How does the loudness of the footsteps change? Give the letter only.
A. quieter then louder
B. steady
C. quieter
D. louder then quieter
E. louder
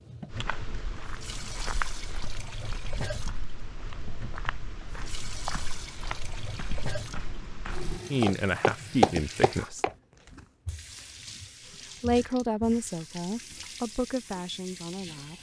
A.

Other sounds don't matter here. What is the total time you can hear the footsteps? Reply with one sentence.
The footsteps can be heard for 10 seconds in total.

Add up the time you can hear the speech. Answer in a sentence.
You can hear the speech for 5 seconds altogether.